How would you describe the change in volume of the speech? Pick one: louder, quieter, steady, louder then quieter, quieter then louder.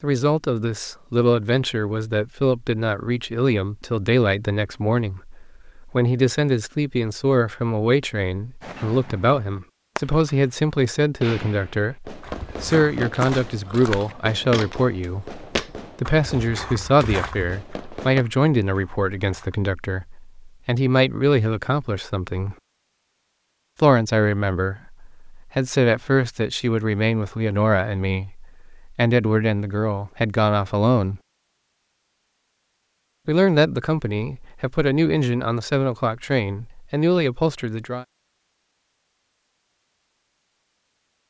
steady.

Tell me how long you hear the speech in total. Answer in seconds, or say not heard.
35 s.